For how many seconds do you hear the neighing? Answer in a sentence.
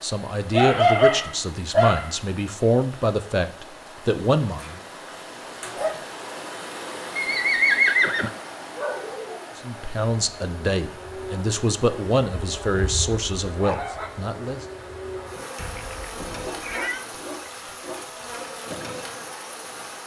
You can hear the neighing for 3 seconds altogether.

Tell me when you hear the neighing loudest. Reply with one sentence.
The volume of the neighing peaks at 8 seconds.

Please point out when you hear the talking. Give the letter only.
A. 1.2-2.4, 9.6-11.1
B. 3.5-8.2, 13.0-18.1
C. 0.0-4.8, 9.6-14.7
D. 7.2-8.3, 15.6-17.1
C.